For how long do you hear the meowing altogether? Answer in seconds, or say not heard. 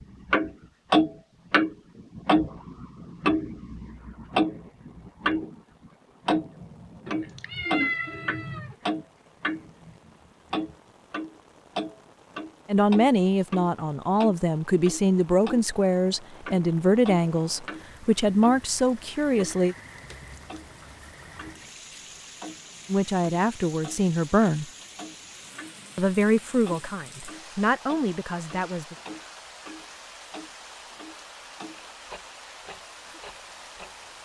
2 s.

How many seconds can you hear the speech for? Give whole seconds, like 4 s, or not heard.
12 s.